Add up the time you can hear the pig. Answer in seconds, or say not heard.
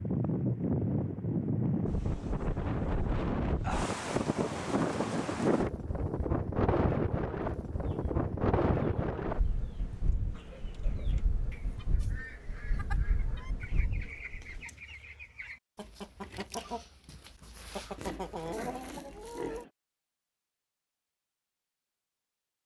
2 s.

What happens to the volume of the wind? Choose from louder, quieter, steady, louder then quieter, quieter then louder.
quieter.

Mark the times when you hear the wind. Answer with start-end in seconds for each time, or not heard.
0.0-14.7.